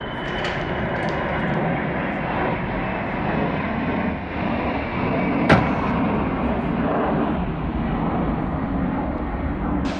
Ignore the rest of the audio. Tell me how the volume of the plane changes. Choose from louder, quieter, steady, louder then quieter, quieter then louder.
steady.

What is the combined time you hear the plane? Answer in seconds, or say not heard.
10 s.